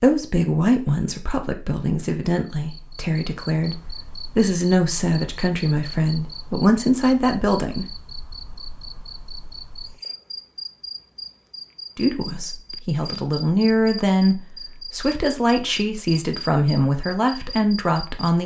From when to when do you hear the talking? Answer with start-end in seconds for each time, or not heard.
0.0-3.8, 4.3-7.8, 11.9-18.4.